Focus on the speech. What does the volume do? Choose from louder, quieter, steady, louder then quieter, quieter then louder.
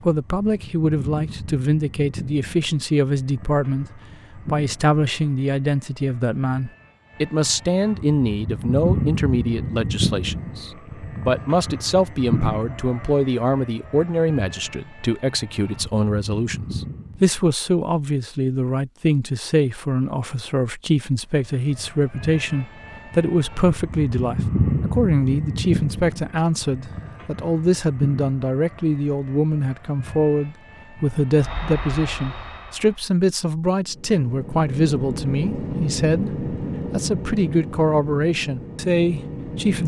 steady.